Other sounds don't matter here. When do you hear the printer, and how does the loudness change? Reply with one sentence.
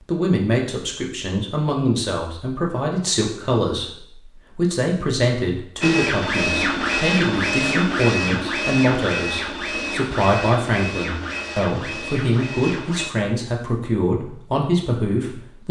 The printer can be heard from 5.8 to 13.1 s, getting quieter.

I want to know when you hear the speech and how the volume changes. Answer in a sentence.
You can hear the speech from 0.0 to 15.6 s, at a steady volume.